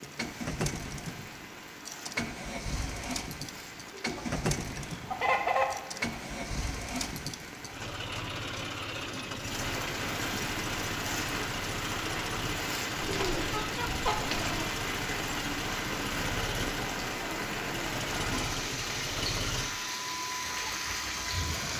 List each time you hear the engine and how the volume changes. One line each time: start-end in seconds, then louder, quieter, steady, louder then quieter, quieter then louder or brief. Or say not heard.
0.0-21.7 steady.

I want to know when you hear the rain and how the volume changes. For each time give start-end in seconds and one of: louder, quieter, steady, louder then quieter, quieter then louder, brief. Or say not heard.
0.0-21.7 louder.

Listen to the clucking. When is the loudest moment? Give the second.
5 s.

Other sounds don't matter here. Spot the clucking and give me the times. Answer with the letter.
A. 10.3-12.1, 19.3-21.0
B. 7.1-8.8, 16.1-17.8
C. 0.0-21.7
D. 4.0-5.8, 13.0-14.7
D.